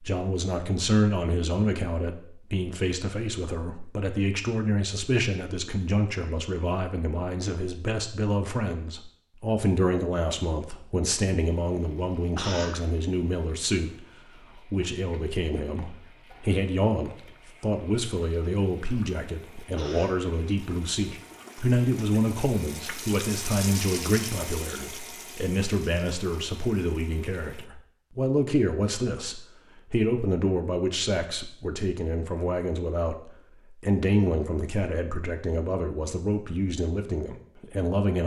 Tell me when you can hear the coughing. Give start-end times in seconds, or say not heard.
12.3-12.8, 19.8-20.2.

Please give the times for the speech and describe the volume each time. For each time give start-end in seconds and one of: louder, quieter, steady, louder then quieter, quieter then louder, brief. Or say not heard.
0.0-38.2 steady.